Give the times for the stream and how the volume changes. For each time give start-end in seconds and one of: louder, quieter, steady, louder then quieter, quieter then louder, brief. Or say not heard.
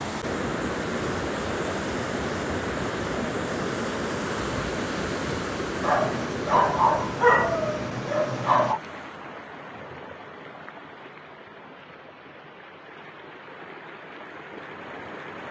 0.0-15.4 quieter.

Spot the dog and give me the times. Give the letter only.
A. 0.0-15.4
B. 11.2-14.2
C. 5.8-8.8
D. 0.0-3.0
C.